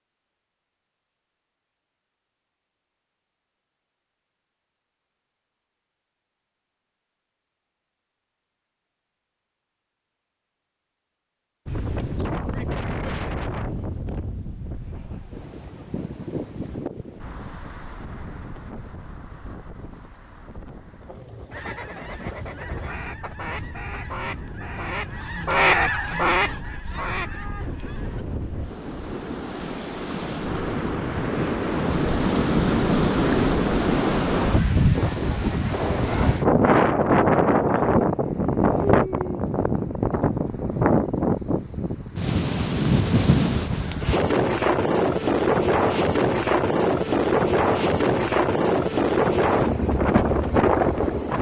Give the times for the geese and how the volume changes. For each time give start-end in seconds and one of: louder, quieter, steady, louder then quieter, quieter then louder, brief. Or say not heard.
21.5-28.2 louder then quieter.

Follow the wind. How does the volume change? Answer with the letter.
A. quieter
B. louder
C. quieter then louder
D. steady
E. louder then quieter
C.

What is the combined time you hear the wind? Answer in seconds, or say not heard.
40 s.